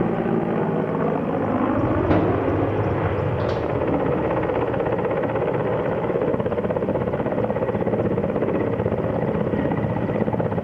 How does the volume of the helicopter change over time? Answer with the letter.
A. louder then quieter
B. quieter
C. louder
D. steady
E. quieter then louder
D.